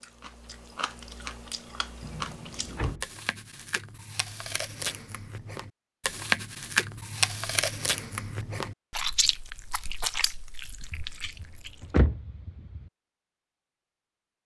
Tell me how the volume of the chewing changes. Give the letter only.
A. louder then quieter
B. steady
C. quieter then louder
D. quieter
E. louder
A.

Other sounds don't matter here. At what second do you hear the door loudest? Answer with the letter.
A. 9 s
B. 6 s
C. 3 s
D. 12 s
D.